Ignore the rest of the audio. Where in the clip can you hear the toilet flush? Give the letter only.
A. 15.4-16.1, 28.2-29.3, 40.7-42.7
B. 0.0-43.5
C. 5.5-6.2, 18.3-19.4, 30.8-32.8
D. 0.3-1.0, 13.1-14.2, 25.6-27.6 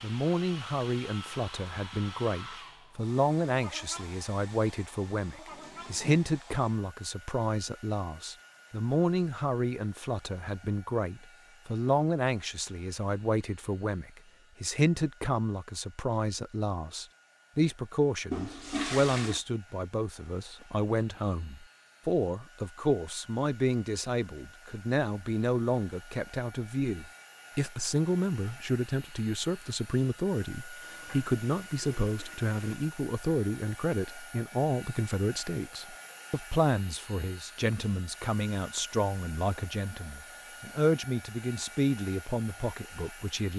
C.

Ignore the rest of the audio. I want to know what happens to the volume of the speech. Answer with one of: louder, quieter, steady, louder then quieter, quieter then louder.
steady.